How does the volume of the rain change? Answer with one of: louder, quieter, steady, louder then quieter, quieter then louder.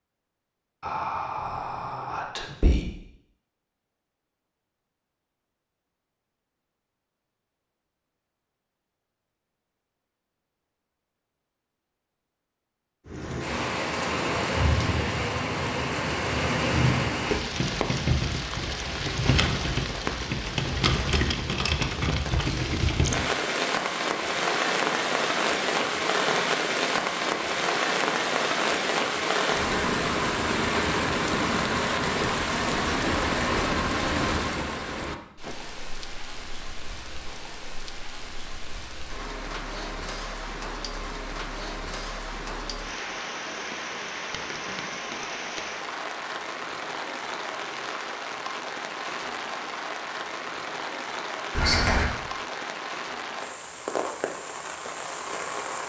quieter.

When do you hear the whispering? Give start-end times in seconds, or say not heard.
0.8-2.9, 51.5-52.0.